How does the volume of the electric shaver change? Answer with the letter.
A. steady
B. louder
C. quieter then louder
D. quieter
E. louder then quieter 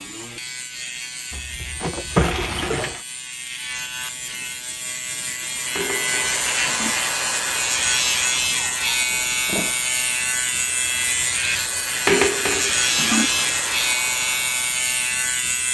B.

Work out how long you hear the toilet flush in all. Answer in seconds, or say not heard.
4 s.